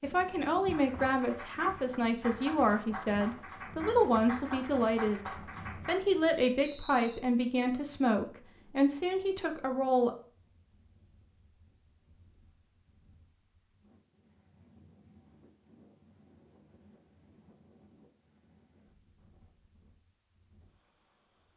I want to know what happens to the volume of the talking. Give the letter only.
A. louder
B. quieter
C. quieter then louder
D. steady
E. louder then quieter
D.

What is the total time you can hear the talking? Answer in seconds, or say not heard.
10 s.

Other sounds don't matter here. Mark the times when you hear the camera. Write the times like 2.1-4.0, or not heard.
not heard.